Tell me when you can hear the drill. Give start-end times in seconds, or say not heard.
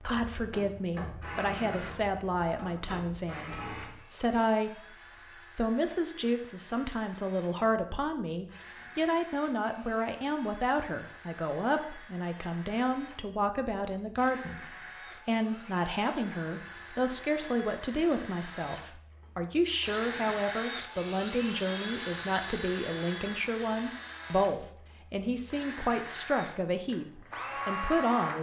0.0-7.5, 8.4-13.2, 14.2-18.9, 19.8-24.6, 25.4-28.3.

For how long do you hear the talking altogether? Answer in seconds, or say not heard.
28 s.